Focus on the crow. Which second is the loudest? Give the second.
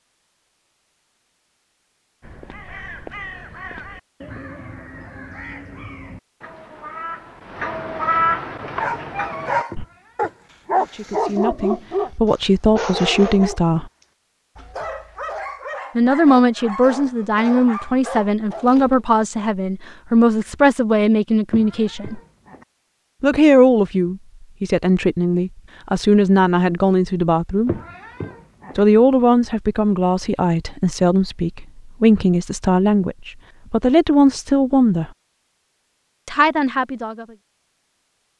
8 s.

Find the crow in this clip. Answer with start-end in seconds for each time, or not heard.
2.2-9.8.